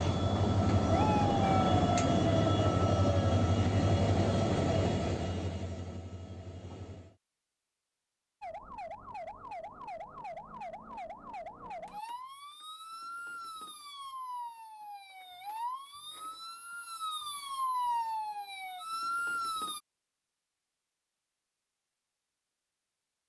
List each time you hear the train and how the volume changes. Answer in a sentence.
The train can be heard from 0.0 to 7.2 s, getting quieter.